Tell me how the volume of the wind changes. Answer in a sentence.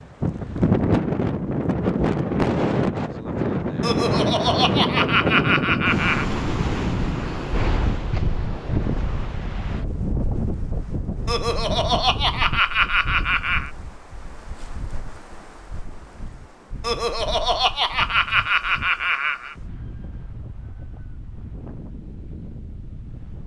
The loudness of the wind goes down.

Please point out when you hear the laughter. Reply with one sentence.
The laughter can be heard from 3.8 to 6.2 s, from 11.2 to 13.7 s and from 16.8 to 19.6 s.